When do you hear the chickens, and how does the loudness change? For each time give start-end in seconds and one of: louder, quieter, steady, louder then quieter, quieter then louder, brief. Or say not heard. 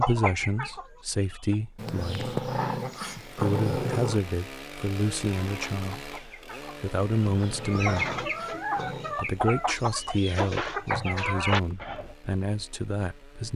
0.0-1.6 brief
5.4-12.2 louder.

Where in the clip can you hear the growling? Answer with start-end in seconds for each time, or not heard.
1.8-4.2, 7.2-9.2.